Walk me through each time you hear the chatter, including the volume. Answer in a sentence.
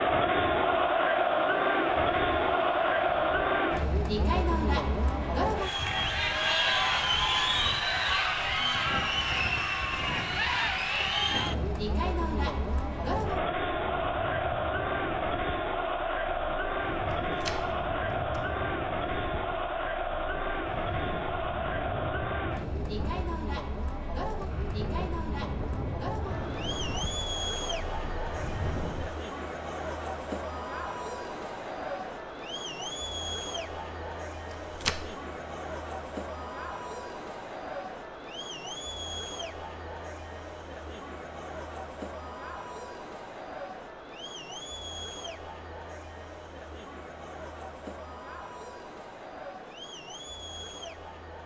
The chatter can be heard from 0.0 to 51.4 s, getting quieter.